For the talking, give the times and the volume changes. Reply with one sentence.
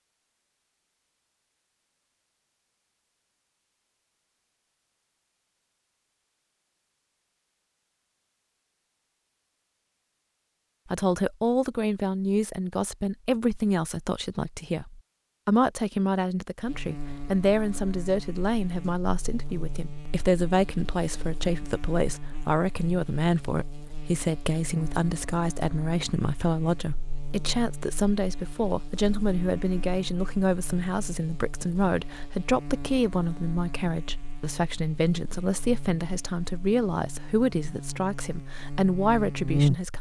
The talking can be heard from 10.9 to 39.9 s, at a steady volume.